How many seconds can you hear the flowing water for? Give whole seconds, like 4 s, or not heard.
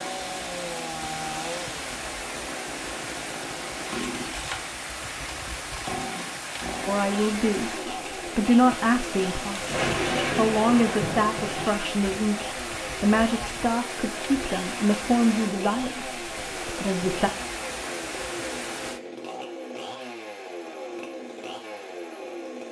19 s.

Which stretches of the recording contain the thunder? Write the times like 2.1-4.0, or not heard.
9.5-11.8.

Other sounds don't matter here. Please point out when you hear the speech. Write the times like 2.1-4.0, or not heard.
6.8-17.3.